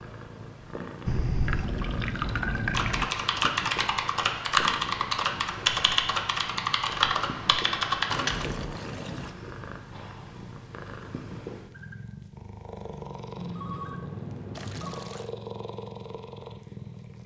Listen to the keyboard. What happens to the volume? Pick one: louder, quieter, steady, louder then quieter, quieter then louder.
steady.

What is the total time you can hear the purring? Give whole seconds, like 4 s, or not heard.
17 s.